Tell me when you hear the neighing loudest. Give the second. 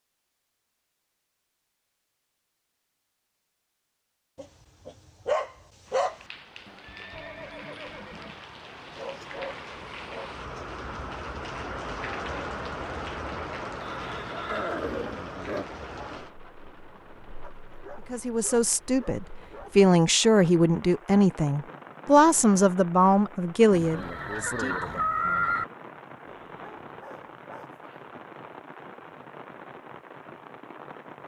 25 s.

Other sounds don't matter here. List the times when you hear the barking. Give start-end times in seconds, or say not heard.
4.3-6.2, 8.9-10.7, 17.4-19.9, 26.4-28.1.